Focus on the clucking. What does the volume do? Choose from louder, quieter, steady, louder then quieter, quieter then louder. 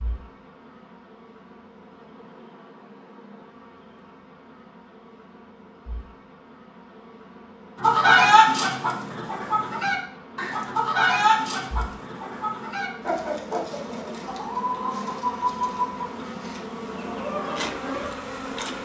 quieter.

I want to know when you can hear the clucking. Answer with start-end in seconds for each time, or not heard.
7.8-18.1.